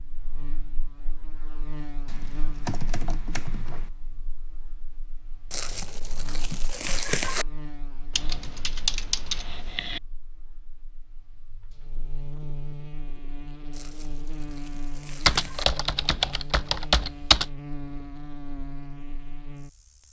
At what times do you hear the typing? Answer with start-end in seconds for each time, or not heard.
2.0-3.9, 8.1-10.0, 15.2-17.4.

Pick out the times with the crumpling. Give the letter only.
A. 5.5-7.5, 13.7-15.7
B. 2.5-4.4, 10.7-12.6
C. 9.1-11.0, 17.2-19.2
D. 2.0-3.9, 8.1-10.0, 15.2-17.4
A.